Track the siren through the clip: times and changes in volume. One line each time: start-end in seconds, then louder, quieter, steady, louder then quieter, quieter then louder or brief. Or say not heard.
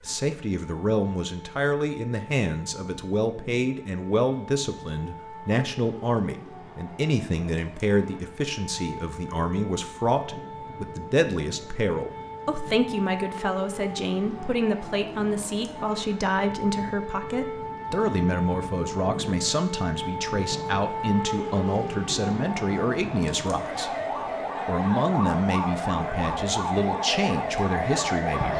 0.0-28.5 louder.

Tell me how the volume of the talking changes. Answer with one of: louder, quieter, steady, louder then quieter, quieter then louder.
steady.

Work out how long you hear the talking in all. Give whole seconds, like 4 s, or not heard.
28 s.